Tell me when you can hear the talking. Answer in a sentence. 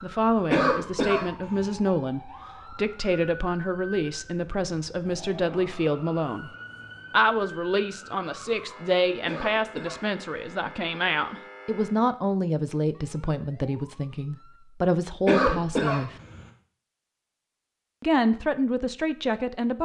You can hear the talking from 0.0 to 6.5 s, from 7.1 to 16.1 s and from 18.0 to 19.8 s.